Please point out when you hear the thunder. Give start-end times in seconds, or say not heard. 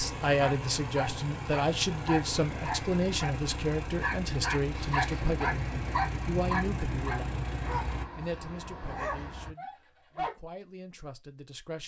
4.7-7.8.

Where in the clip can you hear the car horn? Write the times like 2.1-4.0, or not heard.
not heard.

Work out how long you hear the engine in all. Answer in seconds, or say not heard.
8 s.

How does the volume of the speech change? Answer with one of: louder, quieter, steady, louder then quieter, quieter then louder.
quieter.